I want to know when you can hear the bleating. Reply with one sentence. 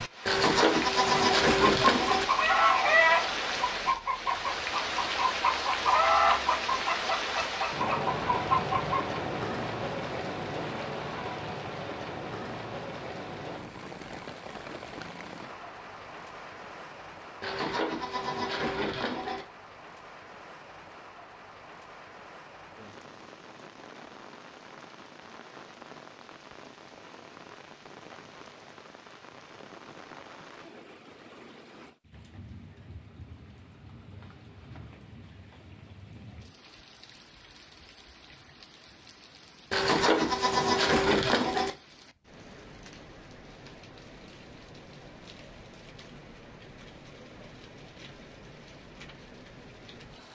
The bleating can be heard from 0.2 to 2.2 s, from 17.4 to 19.4 s and from 39.7 to 41.7 s.